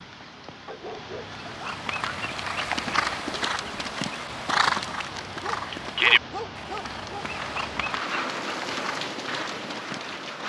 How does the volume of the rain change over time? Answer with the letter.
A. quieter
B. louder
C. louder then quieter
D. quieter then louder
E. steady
B.